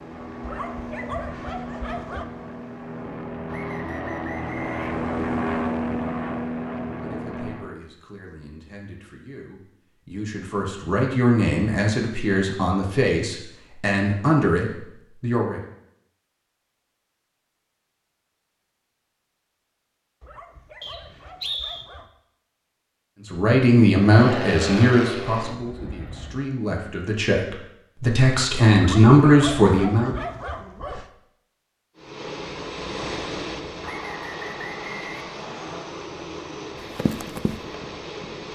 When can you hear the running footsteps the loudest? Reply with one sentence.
The volume of the running footsteps peaks at 37 seconds.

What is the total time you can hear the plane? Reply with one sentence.
You can hear the plane for 17 seconds altogether.